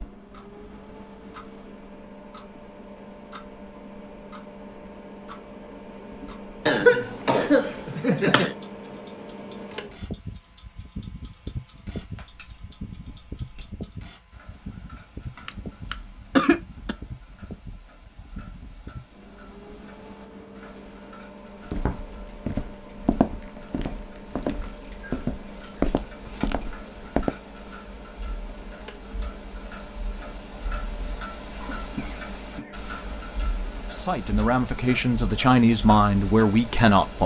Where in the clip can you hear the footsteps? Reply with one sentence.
The footsteps can be heard from 21.6 to 27.3 s.